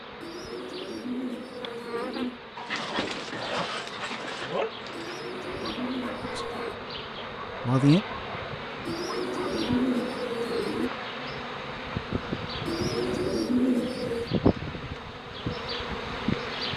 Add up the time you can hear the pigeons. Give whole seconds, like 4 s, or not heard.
8 s.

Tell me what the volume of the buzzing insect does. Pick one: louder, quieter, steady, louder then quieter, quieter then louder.
louder.